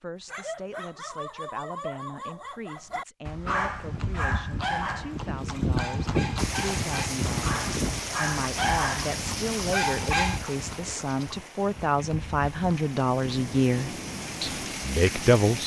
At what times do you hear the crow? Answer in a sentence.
The crow can't be heard in this clip.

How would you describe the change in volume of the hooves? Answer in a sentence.
The loudness of the hooves goes down.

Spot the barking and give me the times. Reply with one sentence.
The barking can be heard from 0.2 to 10.4 s.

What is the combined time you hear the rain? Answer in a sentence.
The rain can be heard for 9 seconds in total.